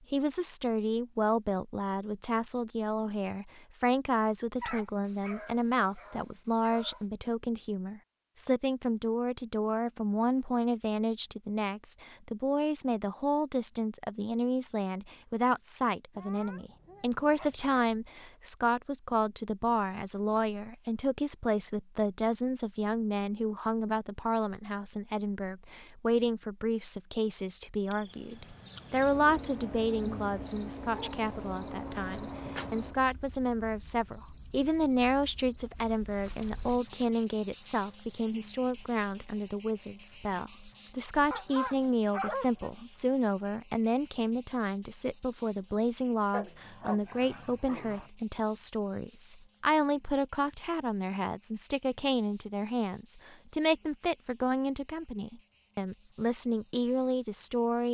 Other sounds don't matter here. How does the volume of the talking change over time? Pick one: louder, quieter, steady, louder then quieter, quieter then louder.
steady.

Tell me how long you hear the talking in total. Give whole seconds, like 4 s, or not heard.
58 s.